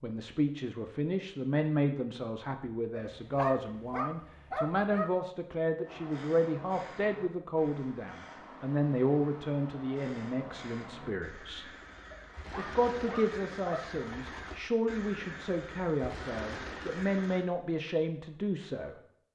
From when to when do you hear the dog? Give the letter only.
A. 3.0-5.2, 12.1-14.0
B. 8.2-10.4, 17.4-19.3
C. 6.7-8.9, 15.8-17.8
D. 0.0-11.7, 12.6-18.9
A.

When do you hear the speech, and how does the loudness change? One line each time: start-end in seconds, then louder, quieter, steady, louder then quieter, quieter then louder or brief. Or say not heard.
0.0-11.7 steady
12.6-18.9 steady.